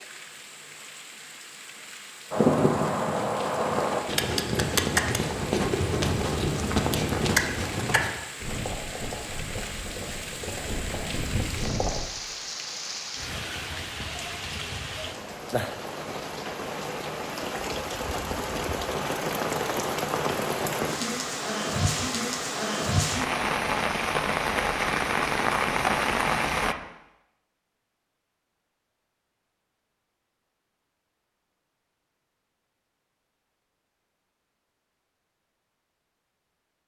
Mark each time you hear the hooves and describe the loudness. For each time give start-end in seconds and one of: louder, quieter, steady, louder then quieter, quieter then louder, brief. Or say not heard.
2.3-12.0 quieter.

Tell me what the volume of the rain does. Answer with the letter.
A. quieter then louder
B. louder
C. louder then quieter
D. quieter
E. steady
B.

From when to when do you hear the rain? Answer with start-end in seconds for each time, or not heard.
0.0-26.8.